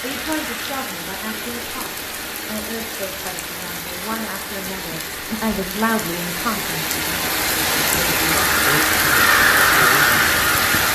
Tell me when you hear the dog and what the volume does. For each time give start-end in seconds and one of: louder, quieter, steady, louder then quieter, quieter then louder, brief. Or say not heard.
not heard.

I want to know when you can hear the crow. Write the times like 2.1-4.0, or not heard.
8.3-10.9.